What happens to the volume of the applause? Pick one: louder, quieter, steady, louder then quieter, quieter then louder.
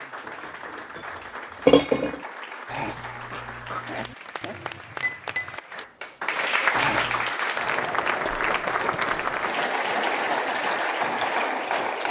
louder.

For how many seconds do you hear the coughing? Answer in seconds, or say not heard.
2 s.